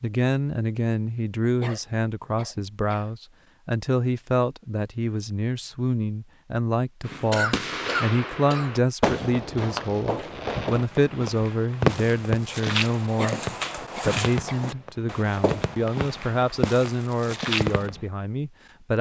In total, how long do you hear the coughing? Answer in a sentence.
You can hear the coughing for 5 seconds altogether.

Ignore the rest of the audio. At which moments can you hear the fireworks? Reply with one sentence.
The fireworks can be heard from 7.0 to 18.1 s.